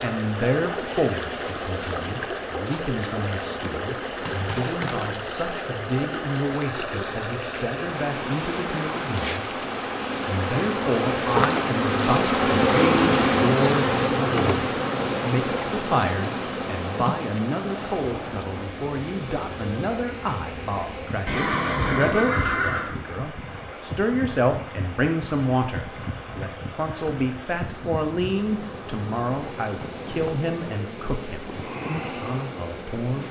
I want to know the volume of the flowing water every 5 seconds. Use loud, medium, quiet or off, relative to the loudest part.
loud, loud, loud, loud, medium, medium, medium.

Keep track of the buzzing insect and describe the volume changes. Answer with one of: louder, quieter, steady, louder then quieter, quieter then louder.
louder then quieter.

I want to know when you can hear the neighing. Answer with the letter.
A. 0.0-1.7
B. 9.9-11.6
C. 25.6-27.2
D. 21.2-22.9
D.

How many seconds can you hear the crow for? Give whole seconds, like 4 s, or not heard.
not heard.